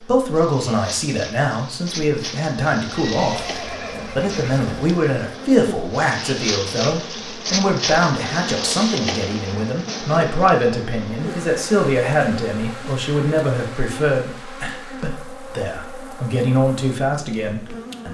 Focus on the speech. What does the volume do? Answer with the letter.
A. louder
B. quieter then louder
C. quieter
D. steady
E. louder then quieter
D.